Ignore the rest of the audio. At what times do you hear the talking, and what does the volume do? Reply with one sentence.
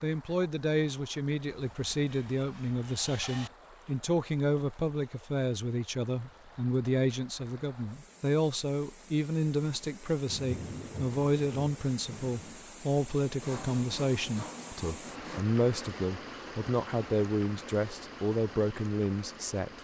The talking can be heard from 0.0 to 19.7 s, at a steady volume.